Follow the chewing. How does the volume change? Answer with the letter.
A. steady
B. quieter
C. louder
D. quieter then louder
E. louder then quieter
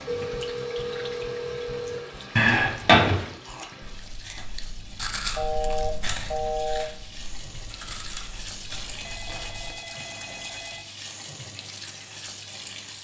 E.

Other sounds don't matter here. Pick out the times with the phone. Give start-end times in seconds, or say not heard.
0.1-2.0, 5.3-6.8, 8.9-10.8.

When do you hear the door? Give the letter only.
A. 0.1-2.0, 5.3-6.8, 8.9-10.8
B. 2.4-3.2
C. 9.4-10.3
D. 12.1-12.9
B.